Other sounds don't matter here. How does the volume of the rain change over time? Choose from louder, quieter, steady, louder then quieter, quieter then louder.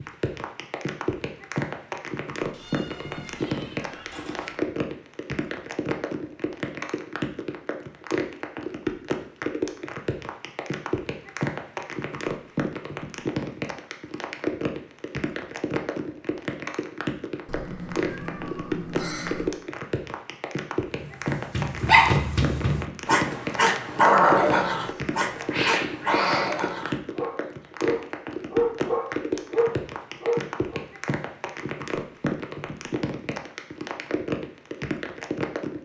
steady.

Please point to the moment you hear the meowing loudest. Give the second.
26 s.